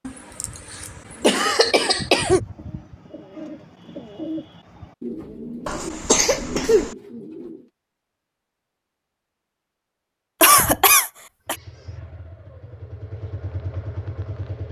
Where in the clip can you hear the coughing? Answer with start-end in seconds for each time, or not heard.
0.1-2.4, 5.7-7.0, 10.4-11.6.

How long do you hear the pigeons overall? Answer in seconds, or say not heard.
7 s.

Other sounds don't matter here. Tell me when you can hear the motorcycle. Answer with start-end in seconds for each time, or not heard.
11.4-14.6.